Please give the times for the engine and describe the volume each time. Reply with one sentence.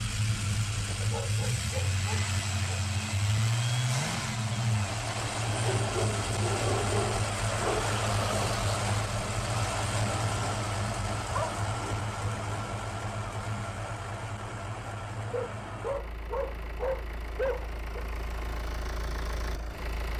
You can hear the engine from 0.0 to 20.1 s, getting quieter.